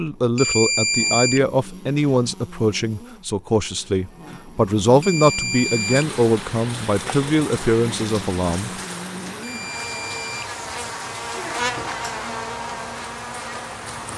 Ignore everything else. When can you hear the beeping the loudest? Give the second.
1 s.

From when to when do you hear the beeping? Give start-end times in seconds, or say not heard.
0.3-1.4, 5.0-6.0, 9.4-10.9.